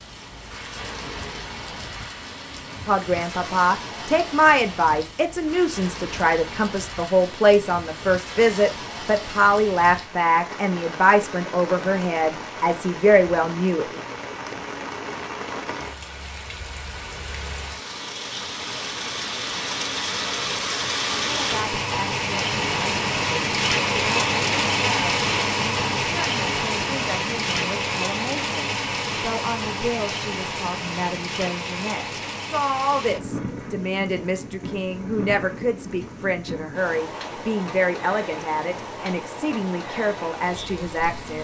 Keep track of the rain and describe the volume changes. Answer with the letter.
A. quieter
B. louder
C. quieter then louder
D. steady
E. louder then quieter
E.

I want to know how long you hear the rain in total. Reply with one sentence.
The rain can be heard for 41 seconds in total.